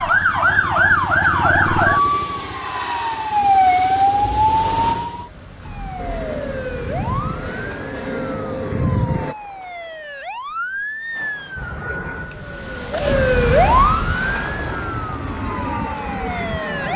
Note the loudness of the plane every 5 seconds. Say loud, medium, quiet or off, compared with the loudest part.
medium, loud, medium, loud.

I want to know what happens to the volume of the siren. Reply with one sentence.
The loudness of the siren goes down, then up.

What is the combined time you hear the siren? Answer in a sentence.
You can hear the siren for 17 seconds altogether.